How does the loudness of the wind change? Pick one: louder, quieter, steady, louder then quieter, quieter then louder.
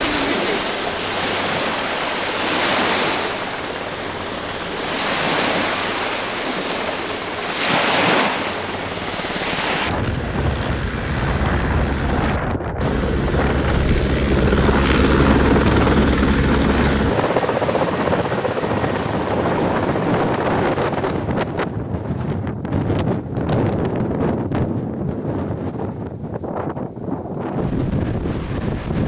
steady.